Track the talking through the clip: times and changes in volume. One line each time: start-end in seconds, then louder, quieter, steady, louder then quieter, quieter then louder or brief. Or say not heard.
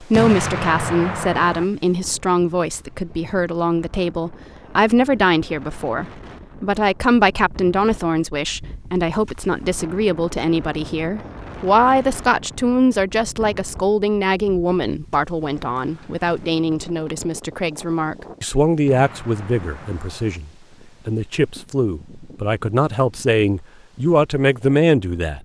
0.0-25.3 steady.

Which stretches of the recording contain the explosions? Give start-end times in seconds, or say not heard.
0.1-1.6, 18.9-20.4.